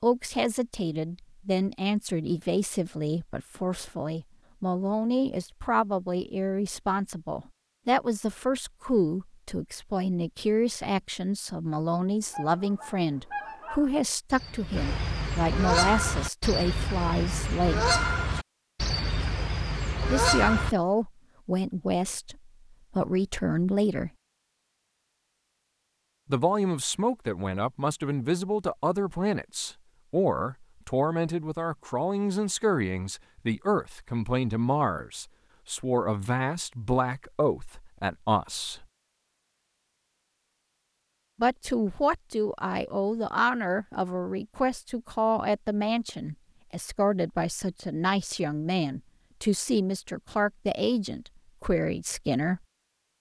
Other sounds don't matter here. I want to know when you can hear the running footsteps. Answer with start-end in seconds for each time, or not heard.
not heard.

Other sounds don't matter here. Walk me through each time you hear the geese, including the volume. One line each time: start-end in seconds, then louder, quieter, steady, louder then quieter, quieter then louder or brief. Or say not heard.
12.2-20.8 louder.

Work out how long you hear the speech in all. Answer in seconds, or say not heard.
46 s.